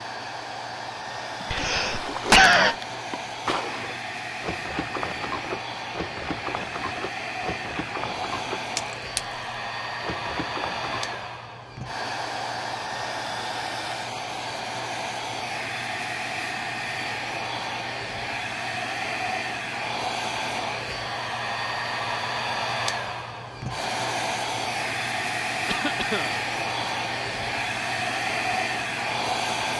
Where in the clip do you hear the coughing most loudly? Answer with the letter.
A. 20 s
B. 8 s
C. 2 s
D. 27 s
C.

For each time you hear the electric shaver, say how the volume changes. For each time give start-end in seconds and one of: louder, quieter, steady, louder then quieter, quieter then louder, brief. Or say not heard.
not heard.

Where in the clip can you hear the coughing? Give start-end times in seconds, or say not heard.
1.5-2.8, 25.6-26.4.